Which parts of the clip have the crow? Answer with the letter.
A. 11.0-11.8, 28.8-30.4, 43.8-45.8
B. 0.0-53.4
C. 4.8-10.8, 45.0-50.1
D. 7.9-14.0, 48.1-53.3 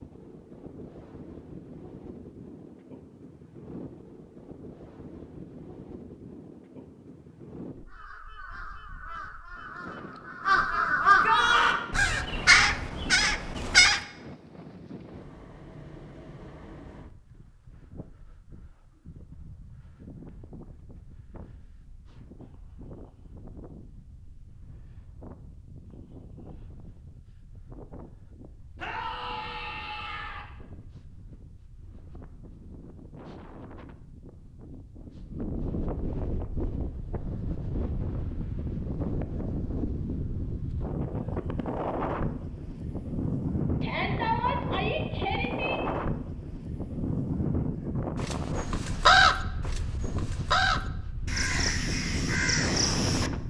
D.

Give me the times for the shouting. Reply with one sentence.
You can hear the shouting from 11.0 to 11.8 s, from 28.8 to 30.4 s and from 43.8 to 45.8 s.